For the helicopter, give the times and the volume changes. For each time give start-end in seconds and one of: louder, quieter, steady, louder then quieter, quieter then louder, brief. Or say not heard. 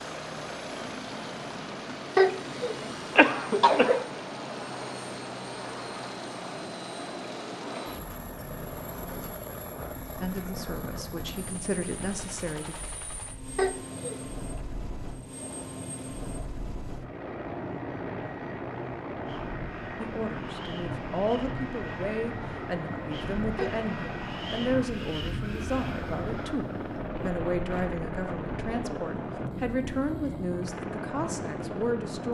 0.0-32.3 steady.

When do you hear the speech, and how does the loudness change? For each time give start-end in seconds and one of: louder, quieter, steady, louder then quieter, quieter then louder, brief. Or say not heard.
10.2-12.8 brief
19.9-32.3 steady.